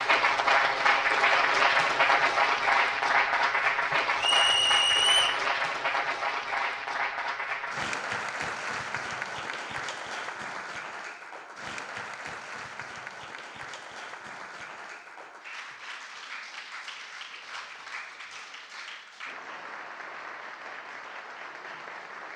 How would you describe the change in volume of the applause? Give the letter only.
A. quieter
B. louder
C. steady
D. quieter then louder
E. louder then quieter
A.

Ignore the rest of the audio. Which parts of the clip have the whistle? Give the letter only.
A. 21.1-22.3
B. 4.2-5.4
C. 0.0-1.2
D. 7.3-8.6
B.